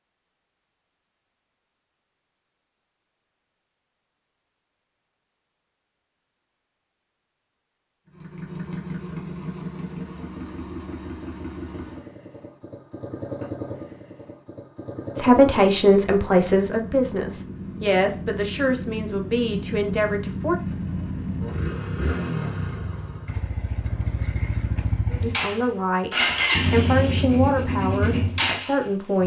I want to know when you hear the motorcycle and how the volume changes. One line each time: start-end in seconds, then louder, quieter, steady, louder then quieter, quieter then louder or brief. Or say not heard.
8.1-29.2 louder.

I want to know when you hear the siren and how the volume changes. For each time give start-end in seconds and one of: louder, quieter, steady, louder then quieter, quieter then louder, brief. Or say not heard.
not heard.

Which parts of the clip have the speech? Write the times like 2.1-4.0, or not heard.
15.2-20.6, 25.2-29.2.